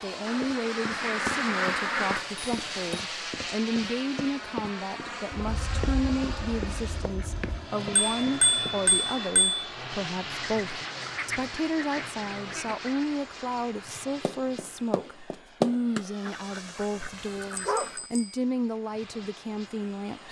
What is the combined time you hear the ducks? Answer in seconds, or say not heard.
9 s.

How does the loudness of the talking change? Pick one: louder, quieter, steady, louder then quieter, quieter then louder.
steady.